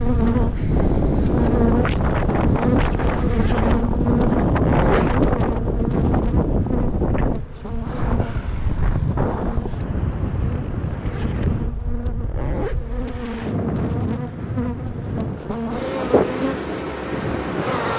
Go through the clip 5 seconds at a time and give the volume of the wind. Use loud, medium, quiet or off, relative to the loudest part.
loud, loud, medium, medium.